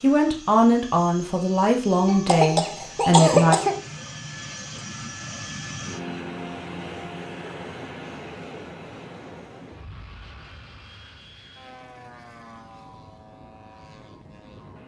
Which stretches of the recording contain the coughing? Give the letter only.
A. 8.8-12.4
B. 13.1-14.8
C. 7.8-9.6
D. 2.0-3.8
D.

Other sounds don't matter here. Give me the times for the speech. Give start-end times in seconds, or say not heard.
0.0-3.6.